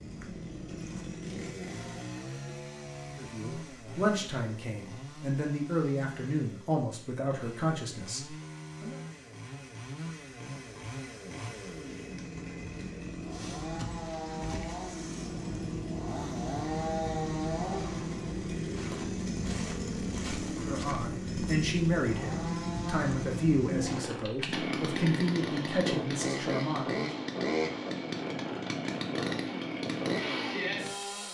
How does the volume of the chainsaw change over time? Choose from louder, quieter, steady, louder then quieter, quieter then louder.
louder.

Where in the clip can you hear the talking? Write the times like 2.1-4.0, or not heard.
3.1-8.9, 20.6-27.2.